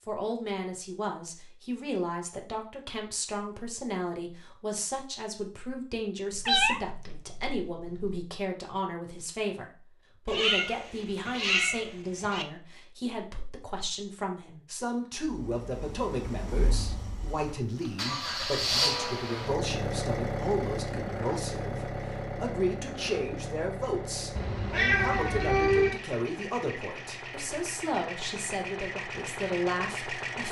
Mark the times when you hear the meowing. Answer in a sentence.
You can hear the meowing from 6.3 to 8.2 s, from 10.2 to 12.4 s and from 24.4 to 26.0 s.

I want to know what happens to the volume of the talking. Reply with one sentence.
The loudness of the talking stays about the same.